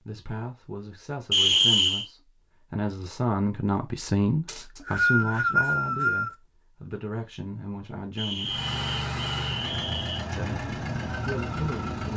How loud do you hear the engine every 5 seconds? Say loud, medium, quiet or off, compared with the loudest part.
off, loud, loud.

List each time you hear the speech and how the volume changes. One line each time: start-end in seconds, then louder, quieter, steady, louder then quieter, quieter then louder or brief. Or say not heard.
0.1-8.6 louder then quieter
10.3-12.1 brief.